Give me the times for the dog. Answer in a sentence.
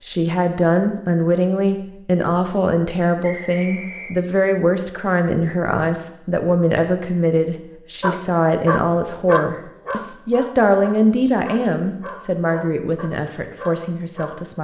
The dog can be heard from 8.0 to 14.4 s.